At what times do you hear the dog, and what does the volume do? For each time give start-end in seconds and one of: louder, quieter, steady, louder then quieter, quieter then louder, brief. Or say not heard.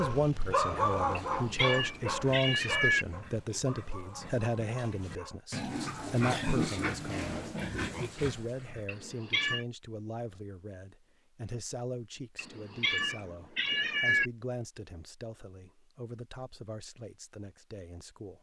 0.0-5.4 quieter.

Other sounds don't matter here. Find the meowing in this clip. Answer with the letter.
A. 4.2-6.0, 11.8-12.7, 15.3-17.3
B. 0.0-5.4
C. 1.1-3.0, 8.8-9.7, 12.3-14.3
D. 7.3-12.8
C.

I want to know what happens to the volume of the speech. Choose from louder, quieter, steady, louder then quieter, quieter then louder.
quieter.